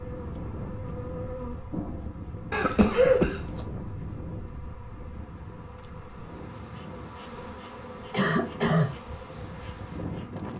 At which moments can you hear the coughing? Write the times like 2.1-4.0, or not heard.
2.5-3.6, 8.1-8.9.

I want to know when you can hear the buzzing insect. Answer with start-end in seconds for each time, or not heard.
0.0-10.5.